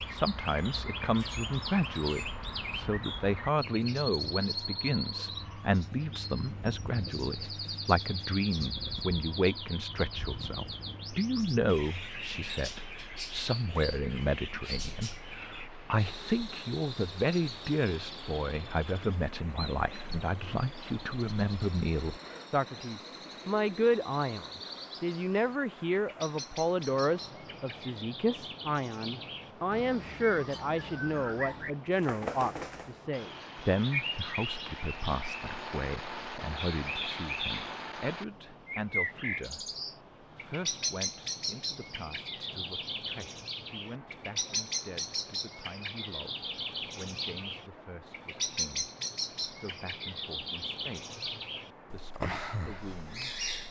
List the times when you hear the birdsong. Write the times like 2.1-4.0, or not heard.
0.0-53.6.